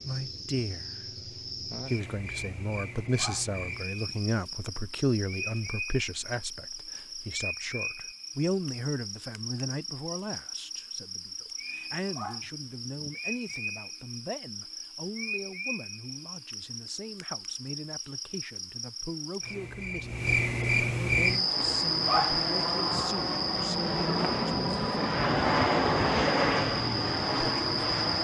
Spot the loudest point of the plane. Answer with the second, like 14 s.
26 s.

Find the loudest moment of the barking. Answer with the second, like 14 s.
22 s.